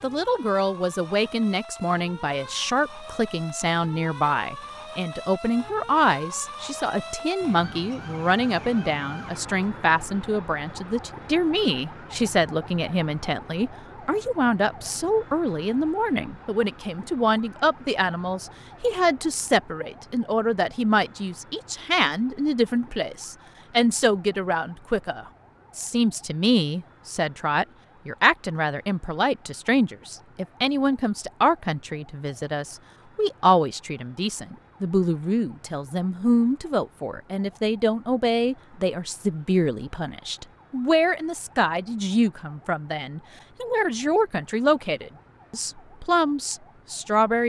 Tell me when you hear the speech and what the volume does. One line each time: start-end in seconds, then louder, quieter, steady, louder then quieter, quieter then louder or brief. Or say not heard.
0.0-47.4 steady.